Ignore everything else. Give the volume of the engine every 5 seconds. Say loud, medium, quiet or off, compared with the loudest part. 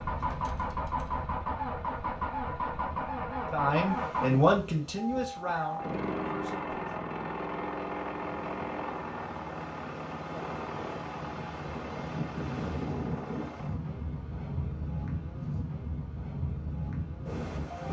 loud, loud, medium, quiet.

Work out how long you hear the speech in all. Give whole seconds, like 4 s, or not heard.
3 s.